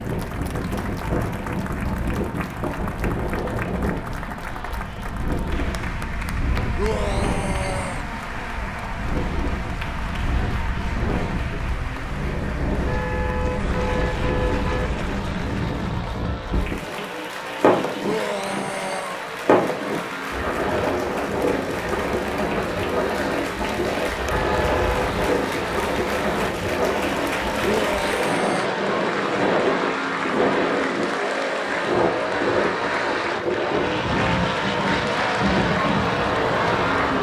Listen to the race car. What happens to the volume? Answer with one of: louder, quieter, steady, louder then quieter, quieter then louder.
louder.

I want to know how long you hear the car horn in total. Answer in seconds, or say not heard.
3 s.